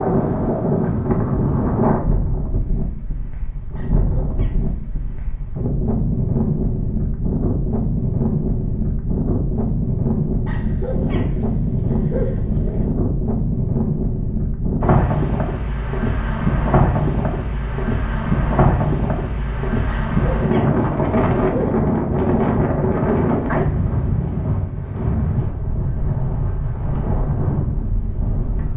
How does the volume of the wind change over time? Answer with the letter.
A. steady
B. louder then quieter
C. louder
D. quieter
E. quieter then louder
A.